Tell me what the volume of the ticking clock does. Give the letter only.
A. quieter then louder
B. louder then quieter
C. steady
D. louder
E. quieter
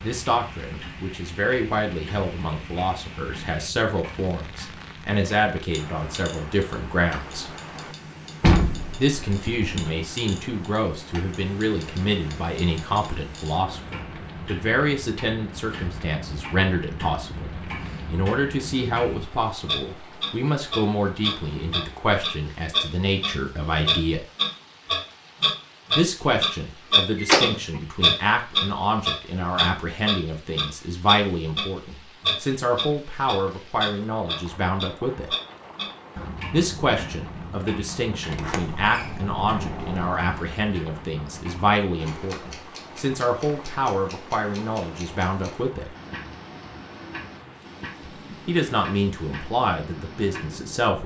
B.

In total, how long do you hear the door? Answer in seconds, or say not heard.
4 s.